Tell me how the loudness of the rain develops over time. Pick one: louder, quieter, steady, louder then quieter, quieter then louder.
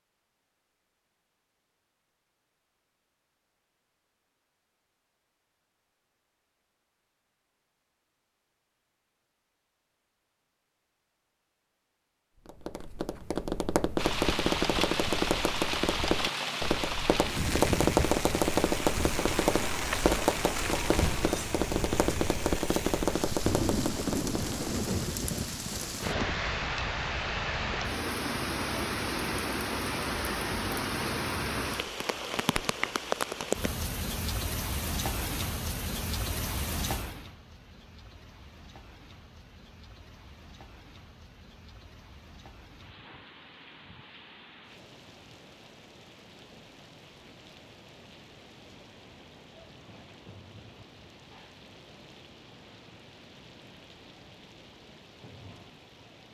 quieter.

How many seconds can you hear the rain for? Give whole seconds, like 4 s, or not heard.
42 s.